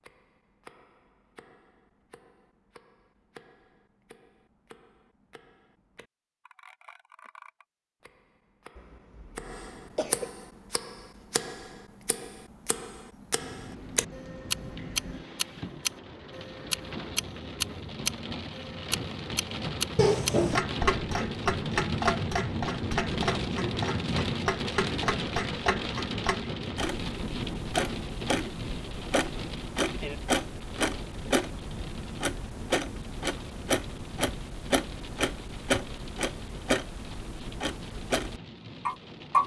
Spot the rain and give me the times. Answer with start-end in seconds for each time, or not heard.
13.3-39.4.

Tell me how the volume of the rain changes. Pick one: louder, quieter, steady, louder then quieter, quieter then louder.
louder then quieter.